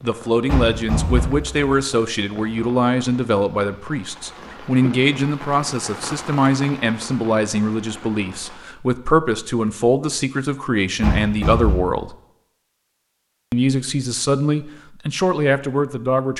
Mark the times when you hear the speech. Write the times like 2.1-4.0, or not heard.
0.0-12.2, 13.5-16.3.